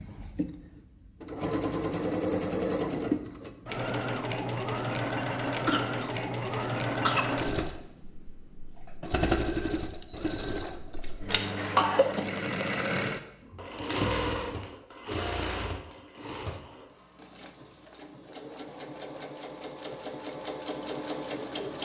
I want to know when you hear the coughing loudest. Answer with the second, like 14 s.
12 s.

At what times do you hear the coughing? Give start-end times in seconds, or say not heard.
5.7-7.2, 11.2-12.2.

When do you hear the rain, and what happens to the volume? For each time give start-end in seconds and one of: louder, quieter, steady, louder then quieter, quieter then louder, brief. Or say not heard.
not heard.